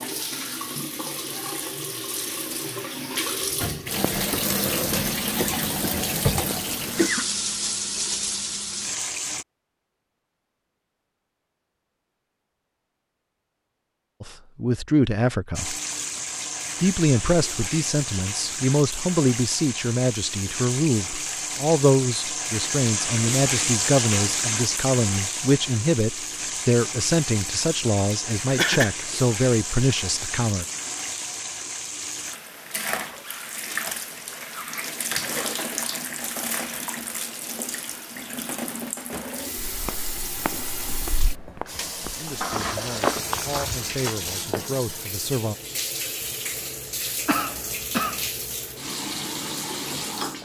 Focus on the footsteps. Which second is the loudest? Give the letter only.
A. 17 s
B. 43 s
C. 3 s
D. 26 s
B.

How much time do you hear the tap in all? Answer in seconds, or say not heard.
44 s.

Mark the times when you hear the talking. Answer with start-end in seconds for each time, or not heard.
14.2-15.8, 16.8-30.6, 42.1-45.5.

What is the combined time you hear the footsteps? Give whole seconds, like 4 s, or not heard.
5 s.